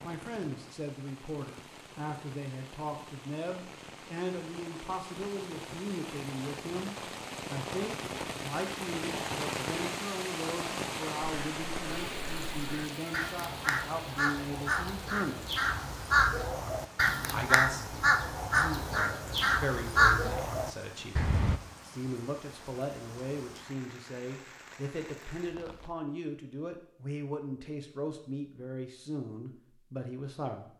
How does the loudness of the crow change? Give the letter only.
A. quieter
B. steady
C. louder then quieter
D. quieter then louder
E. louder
E.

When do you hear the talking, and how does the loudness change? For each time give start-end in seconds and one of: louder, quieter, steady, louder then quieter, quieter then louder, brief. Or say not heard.
0.0-15.5 steady
17.3-30.7 steady.